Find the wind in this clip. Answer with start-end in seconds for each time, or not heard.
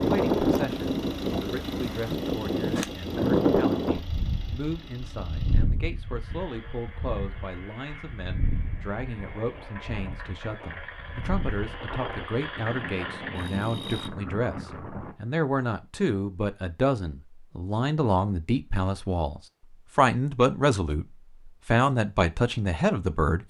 0.0-15.2.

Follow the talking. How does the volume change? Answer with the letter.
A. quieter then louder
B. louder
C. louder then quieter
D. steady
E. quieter
B.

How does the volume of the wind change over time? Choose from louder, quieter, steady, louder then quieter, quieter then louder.
quieter.